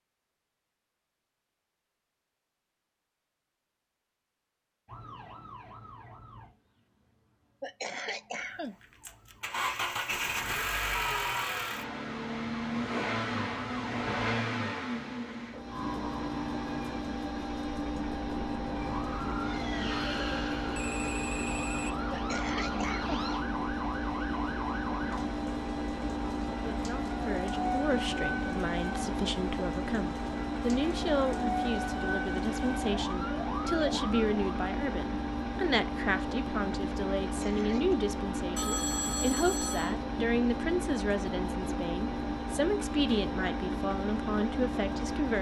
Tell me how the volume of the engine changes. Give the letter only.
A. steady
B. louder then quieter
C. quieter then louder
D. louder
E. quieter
A.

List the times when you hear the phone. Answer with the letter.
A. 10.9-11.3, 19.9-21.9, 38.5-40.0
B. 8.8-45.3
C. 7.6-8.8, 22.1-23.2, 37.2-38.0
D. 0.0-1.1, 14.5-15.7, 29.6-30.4
A.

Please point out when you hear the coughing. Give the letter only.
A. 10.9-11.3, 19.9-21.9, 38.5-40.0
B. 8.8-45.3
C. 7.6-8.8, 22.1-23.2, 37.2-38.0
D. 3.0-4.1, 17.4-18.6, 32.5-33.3
C.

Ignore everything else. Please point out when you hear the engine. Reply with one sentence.
You can hear the engine from 8.8 to 45.3 s.